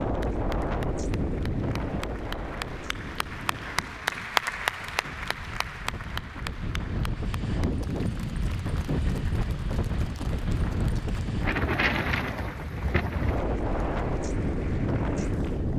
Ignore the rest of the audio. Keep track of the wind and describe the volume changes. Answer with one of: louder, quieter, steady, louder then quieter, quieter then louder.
quieter then louder.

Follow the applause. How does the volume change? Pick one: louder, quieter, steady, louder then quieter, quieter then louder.
louder then quieter.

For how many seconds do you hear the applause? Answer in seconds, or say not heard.
16 s.